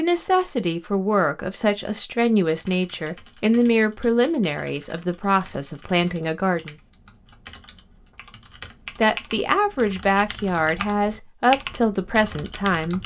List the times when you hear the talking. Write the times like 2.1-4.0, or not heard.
0.0-6.8, 8.9-13.0.